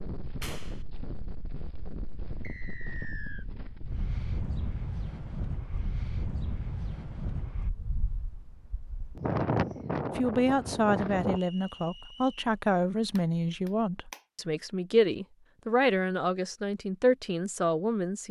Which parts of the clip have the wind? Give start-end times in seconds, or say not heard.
0.0-11.4.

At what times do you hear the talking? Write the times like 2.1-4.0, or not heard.
10.2-18.2.